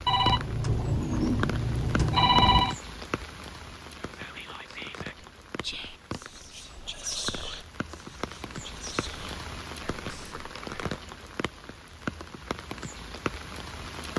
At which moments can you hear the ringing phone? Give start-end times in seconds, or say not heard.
0.1-2.8.